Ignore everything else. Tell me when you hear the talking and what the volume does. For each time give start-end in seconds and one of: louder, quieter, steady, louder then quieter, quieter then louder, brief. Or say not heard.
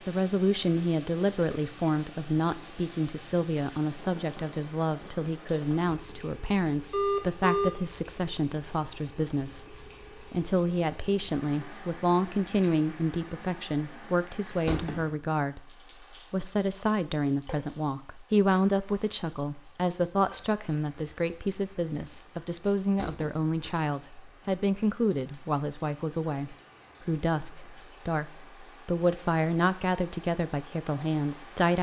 0.1-31.7 steady.